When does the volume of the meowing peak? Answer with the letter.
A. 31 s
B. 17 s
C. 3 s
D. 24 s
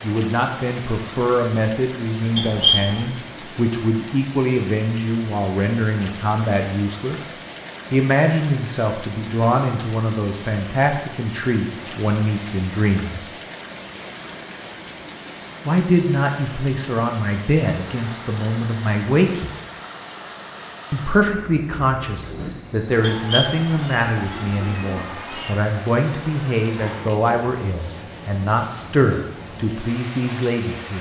C.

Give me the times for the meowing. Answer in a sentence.
You can hear the meowing from 2.4 to 3.0 s and from 23.0 to 25.6 s.